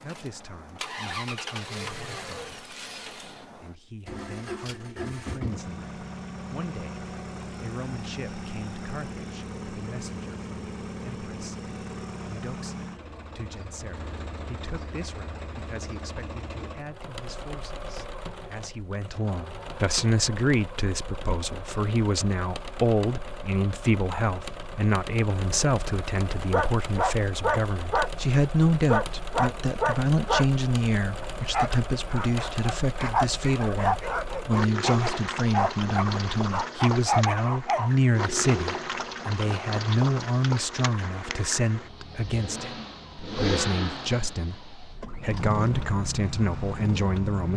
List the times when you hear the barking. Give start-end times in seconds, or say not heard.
26.5-28.1, 28.9-30.5, 31.2-38.3.